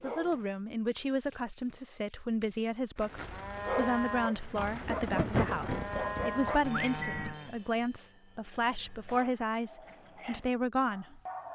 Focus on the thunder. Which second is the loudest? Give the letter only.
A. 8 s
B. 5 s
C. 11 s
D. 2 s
B.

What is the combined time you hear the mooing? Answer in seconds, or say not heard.
6 s.